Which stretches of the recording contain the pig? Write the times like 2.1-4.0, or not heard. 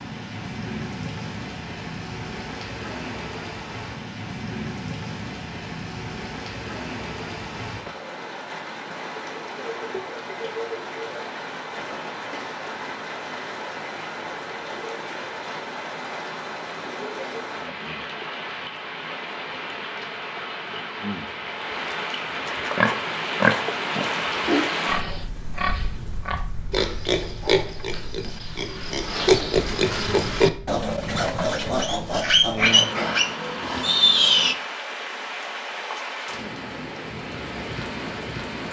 22.6-34.5.